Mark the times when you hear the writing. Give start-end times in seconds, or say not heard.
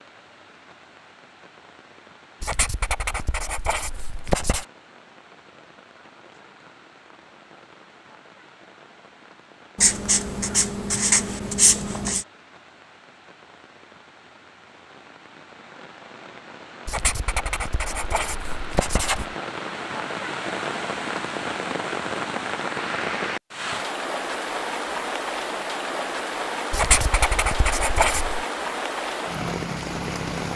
2.4-4.7, 9.8-12.2, 16.9-19.4, 26.7-28.4.